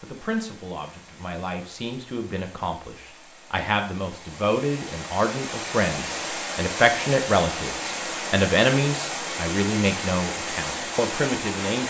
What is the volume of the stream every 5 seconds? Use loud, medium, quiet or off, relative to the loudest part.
quiet, loud, loud.